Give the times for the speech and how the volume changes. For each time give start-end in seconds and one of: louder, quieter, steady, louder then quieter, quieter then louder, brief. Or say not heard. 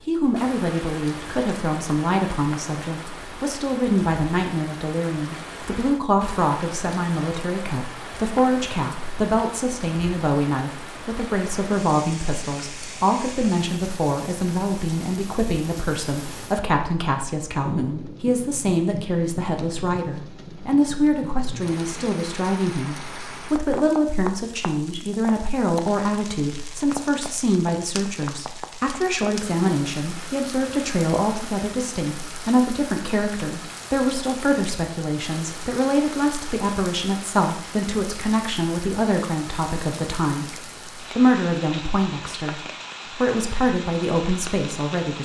0.1-45.2 steady.